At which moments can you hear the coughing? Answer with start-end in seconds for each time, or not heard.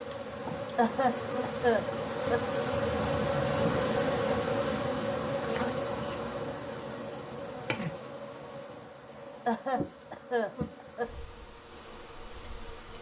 0.8-2.4, 9.4-11.1.